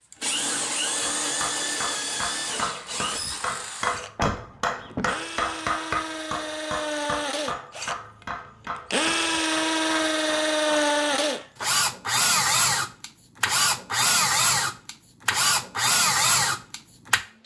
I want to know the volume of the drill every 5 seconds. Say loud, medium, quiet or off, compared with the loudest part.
medium, medium, loud, loud.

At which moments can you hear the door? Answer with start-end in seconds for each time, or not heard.
4.2-5.2.